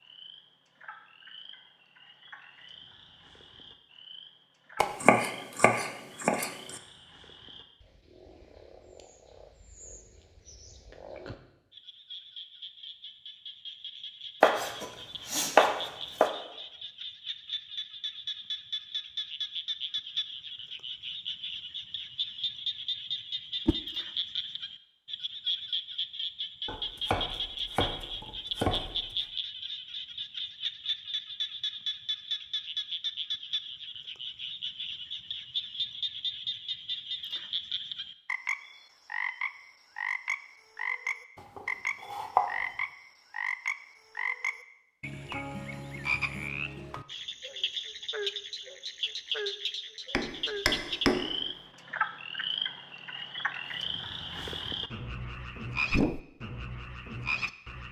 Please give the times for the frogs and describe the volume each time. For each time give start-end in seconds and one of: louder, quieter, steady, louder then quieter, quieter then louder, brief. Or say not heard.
0.0-57.8 louder.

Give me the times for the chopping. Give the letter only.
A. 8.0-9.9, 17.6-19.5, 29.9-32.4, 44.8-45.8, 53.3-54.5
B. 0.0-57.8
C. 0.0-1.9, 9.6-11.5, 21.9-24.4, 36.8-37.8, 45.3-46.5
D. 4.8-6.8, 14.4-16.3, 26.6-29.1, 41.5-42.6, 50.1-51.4
D.